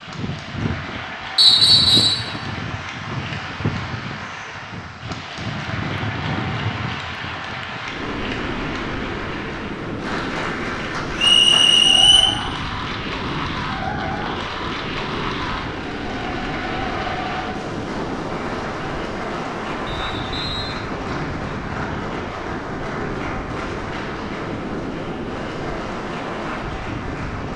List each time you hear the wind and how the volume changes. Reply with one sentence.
The wind can be heard from 0.0 to 27.5 s, at a steady volume.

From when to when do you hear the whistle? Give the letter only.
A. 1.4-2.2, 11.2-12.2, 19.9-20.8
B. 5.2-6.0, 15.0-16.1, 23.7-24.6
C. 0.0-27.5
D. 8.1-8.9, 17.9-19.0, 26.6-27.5
A.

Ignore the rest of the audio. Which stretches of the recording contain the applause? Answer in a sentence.
You can hear the applause from 0.0 to 27.5 s.